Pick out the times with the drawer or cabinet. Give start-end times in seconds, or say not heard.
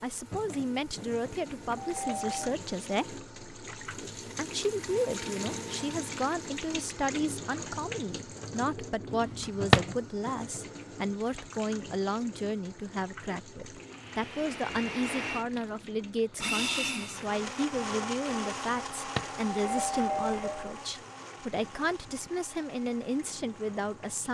9.1-9.9, 18.6-19.4.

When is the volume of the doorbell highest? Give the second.
20 s.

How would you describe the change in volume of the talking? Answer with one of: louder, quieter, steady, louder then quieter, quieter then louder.
steady.